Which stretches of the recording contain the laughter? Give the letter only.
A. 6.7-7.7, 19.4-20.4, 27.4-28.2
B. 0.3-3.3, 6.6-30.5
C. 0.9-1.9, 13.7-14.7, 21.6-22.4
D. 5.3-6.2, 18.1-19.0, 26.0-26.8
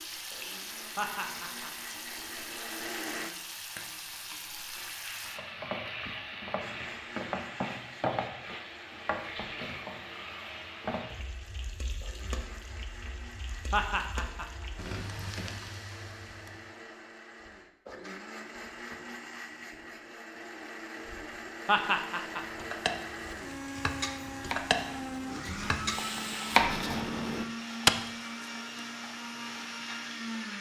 C.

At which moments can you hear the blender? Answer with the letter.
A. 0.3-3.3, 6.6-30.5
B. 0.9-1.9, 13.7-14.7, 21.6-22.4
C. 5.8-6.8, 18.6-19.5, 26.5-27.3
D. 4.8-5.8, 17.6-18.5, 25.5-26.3
A.